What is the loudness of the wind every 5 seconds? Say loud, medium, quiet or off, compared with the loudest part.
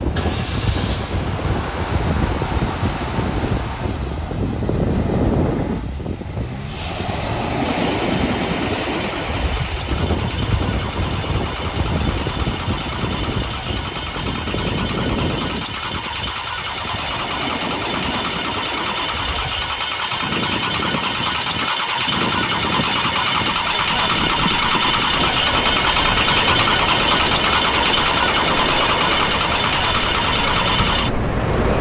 loud, loud, loud, medium, medium, loud, loud.